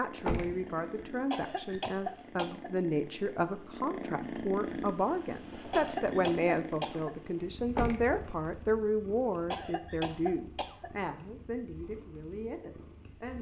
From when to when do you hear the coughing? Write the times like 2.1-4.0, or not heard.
1.3-2.7, 5.7-7.2, 9.5-10.9.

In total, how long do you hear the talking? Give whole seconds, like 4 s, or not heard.
13 s.